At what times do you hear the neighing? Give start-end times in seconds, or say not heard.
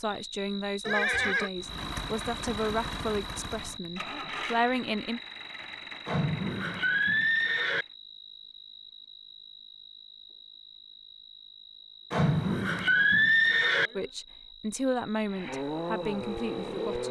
0.8-1.5, 6.0-7.8, 12.1-13.9.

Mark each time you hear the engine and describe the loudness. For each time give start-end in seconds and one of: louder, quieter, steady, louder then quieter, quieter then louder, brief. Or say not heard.
1.6-8.0 quieter
15.3-17.0 brief.